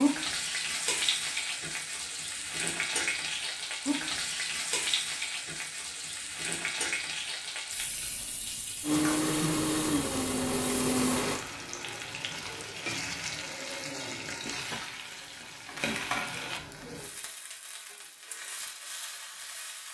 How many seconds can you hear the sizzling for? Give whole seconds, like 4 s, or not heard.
20 s.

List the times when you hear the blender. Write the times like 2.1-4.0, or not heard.
8.8-11.4.